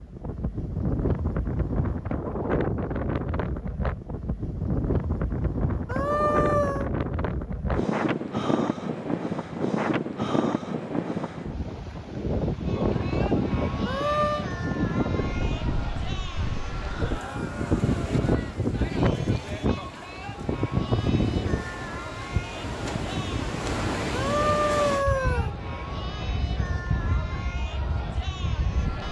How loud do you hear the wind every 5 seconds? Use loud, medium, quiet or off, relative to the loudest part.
loud, loud, loud, loud, loud, medium.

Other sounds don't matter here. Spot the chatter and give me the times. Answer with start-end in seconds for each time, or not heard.
12.5-29.0.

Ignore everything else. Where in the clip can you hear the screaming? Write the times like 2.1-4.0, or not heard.
5.8-6.8, 13.8-14.5, 24.1-25.5.